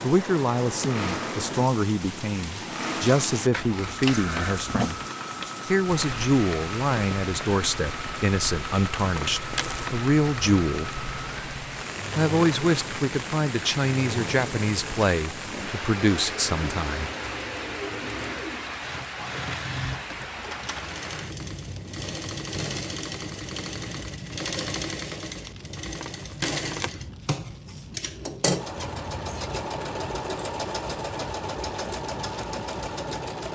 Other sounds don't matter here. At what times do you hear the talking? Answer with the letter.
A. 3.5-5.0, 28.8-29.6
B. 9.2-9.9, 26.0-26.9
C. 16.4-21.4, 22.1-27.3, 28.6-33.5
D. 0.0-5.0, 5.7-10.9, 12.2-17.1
D.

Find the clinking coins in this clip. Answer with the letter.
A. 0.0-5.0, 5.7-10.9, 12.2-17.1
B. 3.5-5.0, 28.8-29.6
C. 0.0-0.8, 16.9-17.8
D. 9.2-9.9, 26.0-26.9
D.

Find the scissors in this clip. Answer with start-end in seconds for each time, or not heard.
3.5-5.0, 28.8-29.6.